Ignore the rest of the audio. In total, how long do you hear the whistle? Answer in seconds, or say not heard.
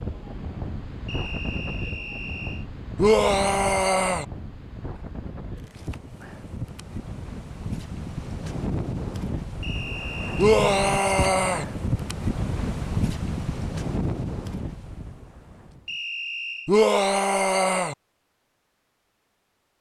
4 s.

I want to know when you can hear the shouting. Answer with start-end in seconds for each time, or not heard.
3.0-4.2, 10.3-11.7, 16.6-17.9.